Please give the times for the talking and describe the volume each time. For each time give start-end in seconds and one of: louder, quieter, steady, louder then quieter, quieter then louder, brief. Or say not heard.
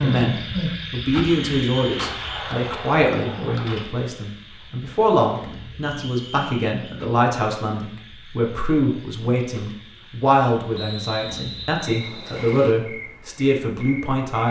0.0-14.4 steady.